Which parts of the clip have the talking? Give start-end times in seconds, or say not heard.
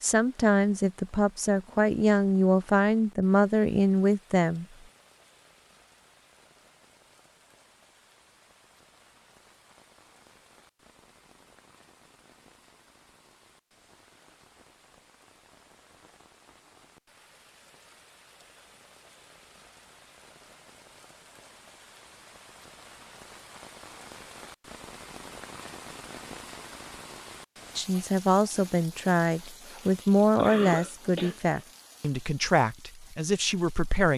0.0-4.7, 27.8-34.1.